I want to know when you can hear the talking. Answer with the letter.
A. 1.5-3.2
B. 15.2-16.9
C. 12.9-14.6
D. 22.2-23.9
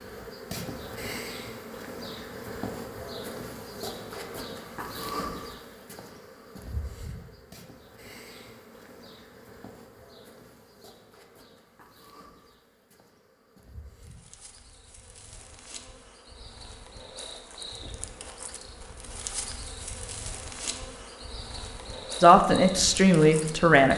D.